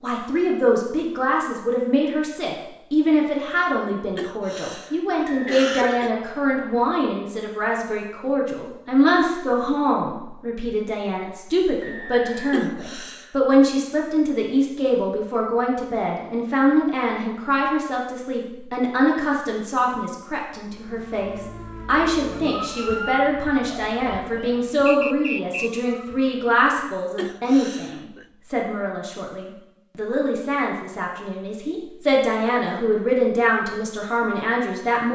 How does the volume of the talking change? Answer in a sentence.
The loudness of the talking stays about the same.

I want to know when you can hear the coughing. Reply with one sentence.
The coughing can be heard from 4.2 to 6.1 s, from 12.5 to 13.3 s and from 27.1 to 28.2 s.